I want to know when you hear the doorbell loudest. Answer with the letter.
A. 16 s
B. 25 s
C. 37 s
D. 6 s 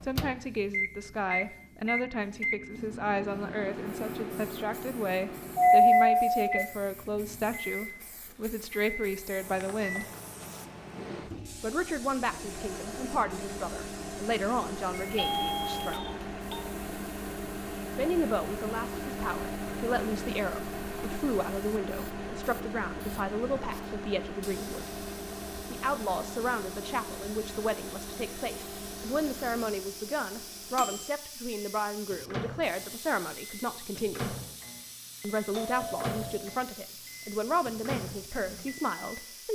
D.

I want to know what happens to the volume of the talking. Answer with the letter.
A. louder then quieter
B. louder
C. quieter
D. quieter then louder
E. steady
E.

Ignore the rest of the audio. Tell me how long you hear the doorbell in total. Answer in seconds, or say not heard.
4 s.